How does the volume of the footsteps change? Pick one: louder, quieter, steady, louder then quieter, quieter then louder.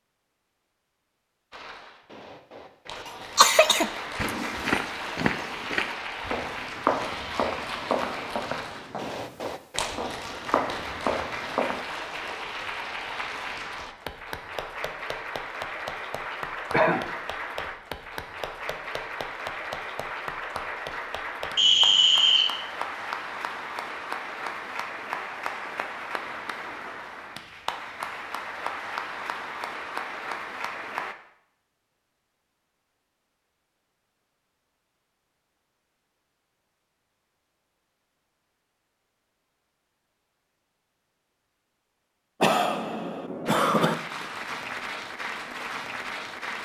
quieter then louder.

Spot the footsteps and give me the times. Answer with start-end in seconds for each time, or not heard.
4.2-11.8.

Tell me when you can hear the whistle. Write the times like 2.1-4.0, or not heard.
21.6-22.5.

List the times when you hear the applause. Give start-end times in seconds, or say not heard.
1.5-31.1, 43.5-46.6.